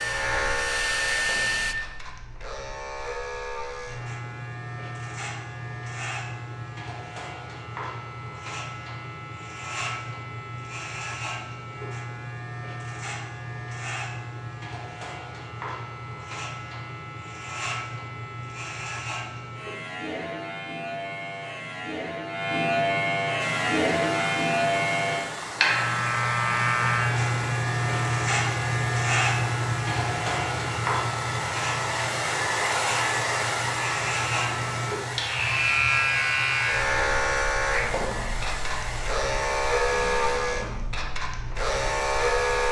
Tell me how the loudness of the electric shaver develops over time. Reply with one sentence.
The volume of the electric shaver goes up.